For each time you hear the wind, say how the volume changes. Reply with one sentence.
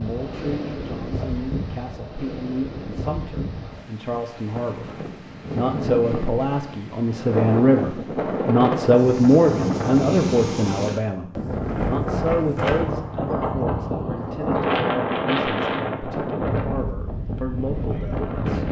The wind can be heard from 0.0 to 18.6 s, getting louder.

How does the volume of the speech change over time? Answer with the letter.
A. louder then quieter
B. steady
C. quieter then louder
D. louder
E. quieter
A.